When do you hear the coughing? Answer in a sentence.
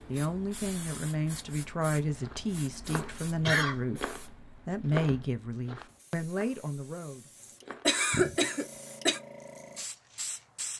The coughing can be heard from 2.9 to 3.8 s and from 7.8 to 9.2 s.